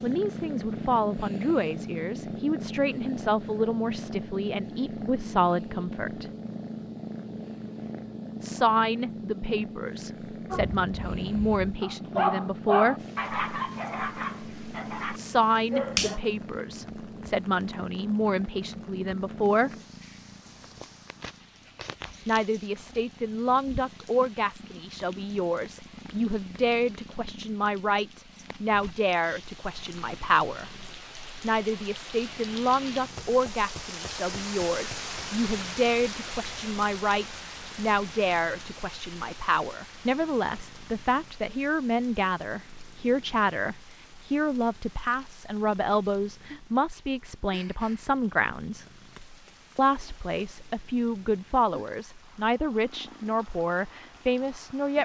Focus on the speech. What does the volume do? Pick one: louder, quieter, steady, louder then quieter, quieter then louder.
steady.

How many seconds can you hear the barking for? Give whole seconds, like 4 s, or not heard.
6 s.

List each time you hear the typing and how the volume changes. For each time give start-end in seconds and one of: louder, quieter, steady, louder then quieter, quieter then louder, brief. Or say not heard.
not heard.